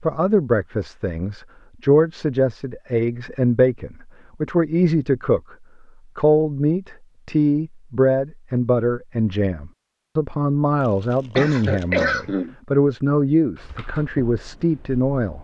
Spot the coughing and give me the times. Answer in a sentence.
The coughing can be heard from 11.3 to 12.6 s.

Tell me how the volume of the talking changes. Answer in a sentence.
The volume of the talking stays about the same.